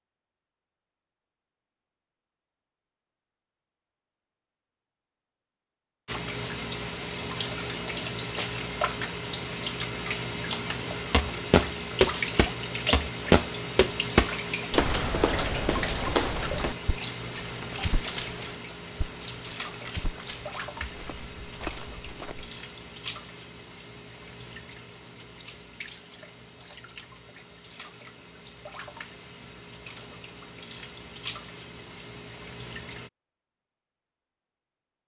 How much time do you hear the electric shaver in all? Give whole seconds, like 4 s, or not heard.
not heard.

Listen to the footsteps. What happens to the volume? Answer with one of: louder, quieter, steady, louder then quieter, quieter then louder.
quieter.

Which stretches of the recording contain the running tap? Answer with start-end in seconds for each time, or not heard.
6.0-33.1.